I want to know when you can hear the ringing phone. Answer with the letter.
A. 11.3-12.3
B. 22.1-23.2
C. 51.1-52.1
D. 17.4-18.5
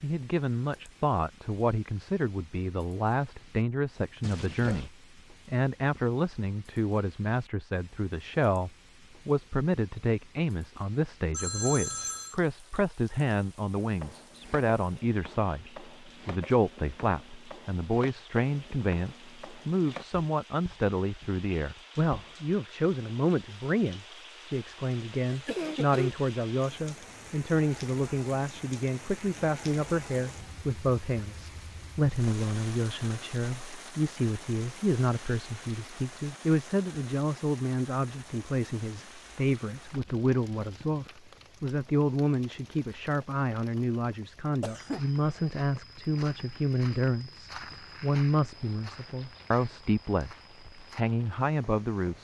A.